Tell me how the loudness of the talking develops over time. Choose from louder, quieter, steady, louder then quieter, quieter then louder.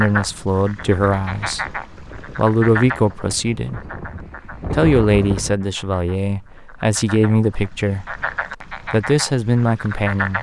steady.